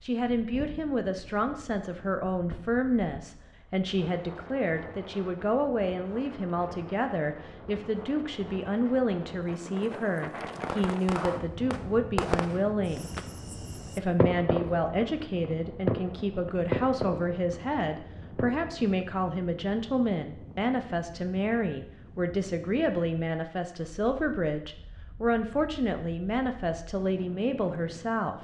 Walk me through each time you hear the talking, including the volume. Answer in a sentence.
The talking can be heard from 0.0 to 13.1 s, at a steady volume; and from 13.8 to 28.3 s, at a steady volume.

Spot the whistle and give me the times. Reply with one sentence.
You can't hear the whistle here.